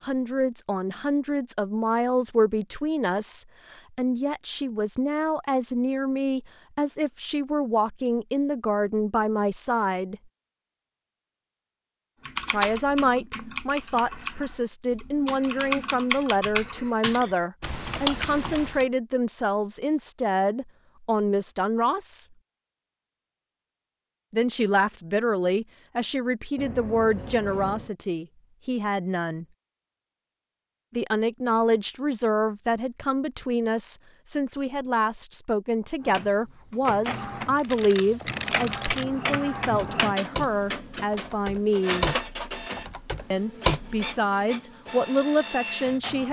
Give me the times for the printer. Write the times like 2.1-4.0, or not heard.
36.0-46.2.